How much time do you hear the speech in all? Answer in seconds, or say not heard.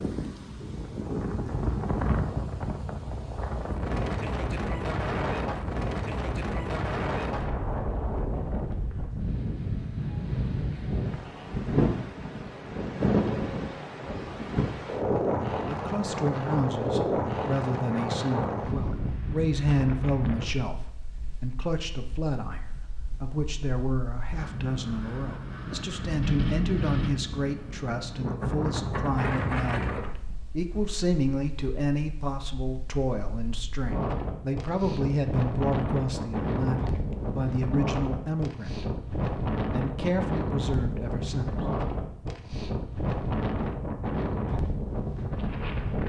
25 s.